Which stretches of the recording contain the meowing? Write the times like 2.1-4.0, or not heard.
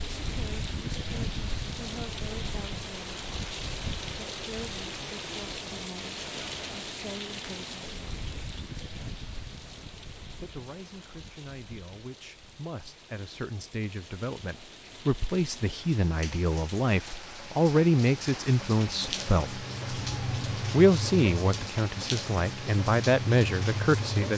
19.9-20.6.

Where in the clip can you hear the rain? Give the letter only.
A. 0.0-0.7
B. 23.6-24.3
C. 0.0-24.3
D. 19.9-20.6
C.